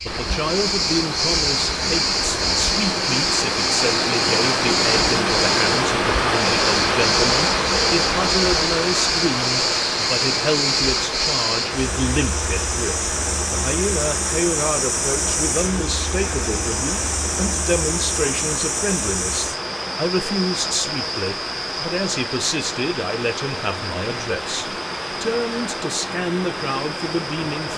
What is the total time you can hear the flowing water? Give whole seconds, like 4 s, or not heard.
28 s.